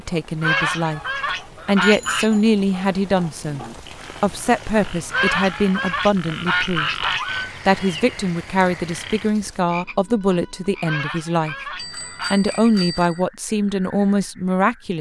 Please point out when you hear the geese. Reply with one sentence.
The geese can be heard from 0.4 to 2.2 s, from 5.1 to 7.5 s and from 10.8 to 12.3 s.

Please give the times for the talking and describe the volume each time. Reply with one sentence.
You can hear the talking briefly from 0.0 to 1.0 s; and from 1.6 to 14.9 s, at a steady volume.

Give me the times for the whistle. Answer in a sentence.
The whistle can't be heard in this clip.